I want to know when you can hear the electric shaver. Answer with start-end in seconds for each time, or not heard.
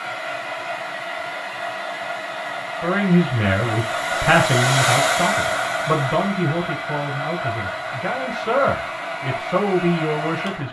not heard.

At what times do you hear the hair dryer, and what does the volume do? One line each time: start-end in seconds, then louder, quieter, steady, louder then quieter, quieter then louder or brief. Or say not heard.
0.0-10.6 louder then quieter.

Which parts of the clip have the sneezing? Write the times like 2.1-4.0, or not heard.
not heard.